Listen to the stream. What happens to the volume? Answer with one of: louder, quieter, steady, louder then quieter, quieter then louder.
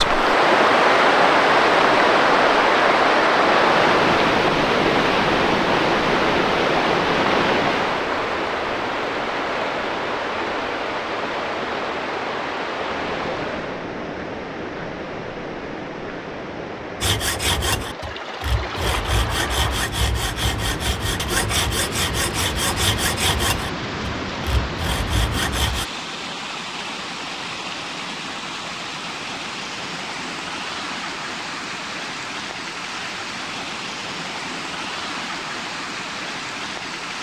quieter.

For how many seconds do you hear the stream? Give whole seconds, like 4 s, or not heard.
37 s.